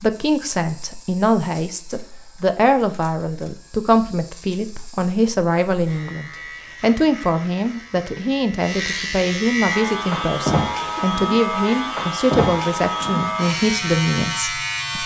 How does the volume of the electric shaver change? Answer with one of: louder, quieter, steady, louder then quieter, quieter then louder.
louder.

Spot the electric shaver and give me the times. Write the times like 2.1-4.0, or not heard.
0.0-15.0.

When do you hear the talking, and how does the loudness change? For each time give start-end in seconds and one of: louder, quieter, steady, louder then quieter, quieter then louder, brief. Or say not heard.
0.0-15.0 steady.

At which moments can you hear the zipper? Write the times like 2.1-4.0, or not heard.
not heard.